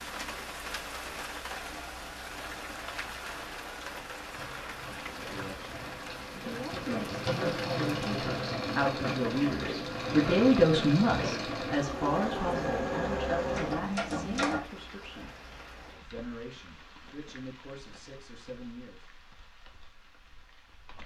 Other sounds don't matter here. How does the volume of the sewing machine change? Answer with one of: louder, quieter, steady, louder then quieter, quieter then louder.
louder.